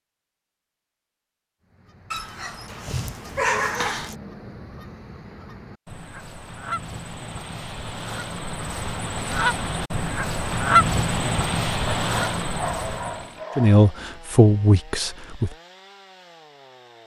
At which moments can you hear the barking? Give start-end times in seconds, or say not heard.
2.1-4.2, 11.8-13.8.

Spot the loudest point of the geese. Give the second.
11 s.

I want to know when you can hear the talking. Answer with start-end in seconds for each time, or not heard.
13.6-15.5.